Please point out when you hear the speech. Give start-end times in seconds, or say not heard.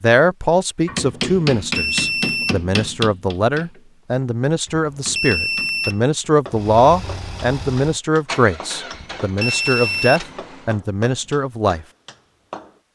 0.0-11.8.